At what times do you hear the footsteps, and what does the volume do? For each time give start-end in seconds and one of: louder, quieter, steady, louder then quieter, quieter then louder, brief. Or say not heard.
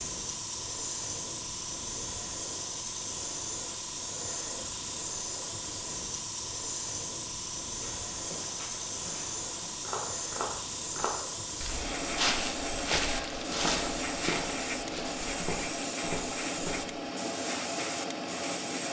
7.8-16.9 louder then quieter.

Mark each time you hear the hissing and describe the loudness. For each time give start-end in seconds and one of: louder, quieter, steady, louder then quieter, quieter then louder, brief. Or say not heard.
0.0-18.8 steady.